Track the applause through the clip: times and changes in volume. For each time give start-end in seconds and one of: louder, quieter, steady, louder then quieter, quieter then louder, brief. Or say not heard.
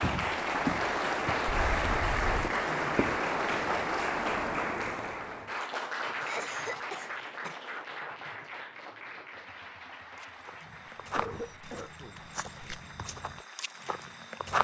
0.0-14.5 quieter.